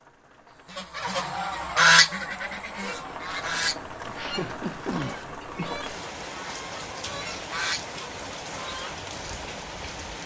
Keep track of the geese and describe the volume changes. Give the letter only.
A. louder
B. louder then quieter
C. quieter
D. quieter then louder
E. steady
C.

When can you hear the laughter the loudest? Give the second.
5 s.